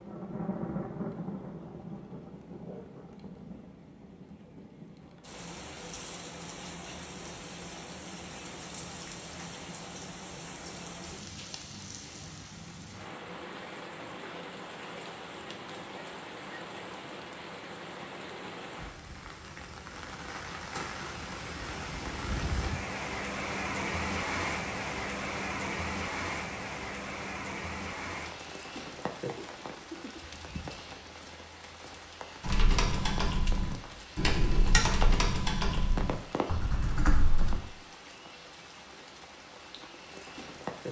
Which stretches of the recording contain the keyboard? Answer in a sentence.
The keyboard can be heard from 32.4 to 37.6 s.